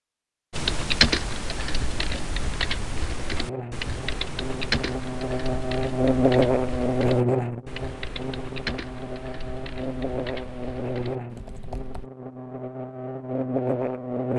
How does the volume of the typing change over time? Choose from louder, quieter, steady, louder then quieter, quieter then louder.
quieter.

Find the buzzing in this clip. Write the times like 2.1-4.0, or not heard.
3.3-14.3.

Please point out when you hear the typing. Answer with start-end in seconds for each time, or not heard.
0.5-12.1.